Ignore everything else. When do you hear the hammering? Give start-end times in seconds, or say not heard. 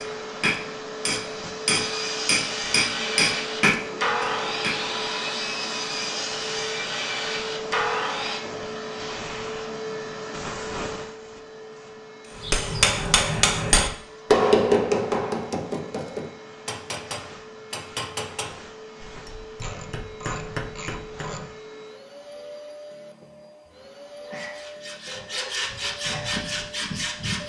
0.0-4.8, 12.4-21.4.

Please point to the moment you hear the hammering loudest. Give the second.
14 s.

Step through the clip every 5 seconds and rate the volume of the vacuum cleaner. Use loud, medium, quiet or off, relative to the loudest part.
loud, loud, loud, medium, medium, medium.